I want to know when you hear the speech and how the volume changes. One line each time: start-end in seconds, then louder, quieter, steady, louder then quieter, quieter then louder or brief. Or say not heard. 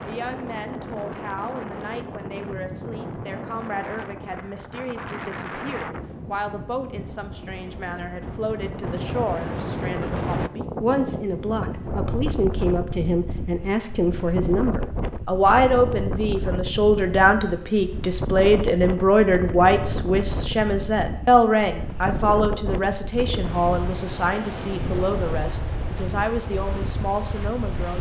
0.1-27.9 louder then quieter.